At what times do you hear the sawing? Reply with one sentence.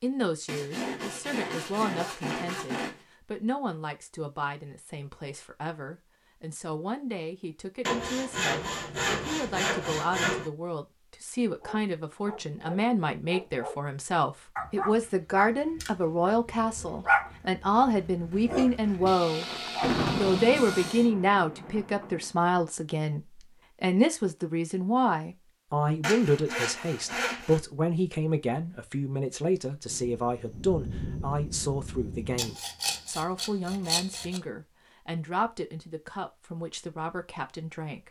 You can hear the sawing from 0.5 to 3.0 s, from 7.8 to 10.5 s, from 19.1 to 21.1 s, from 26.0 to 27.6 s and from 32.4 to 34.4 s.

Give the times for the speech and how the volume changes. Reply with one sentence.
You can hear the speech from 0.0 to 19.5 s, getting louder; and from 20.1 to 38.0 s, getting quieter.